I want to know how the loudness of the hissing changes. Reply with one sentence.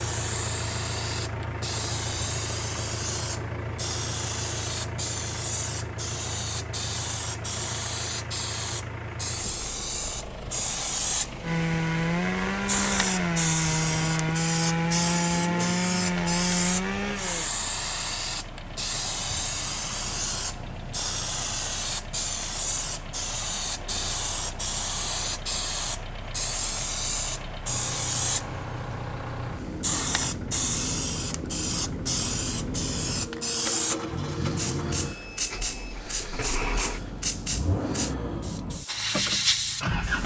The volume of the hissing stays about the same.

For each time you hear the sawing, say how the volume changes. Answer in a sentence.
The sawing can be heard from 11.4 to 17.5 s, at a steady volume.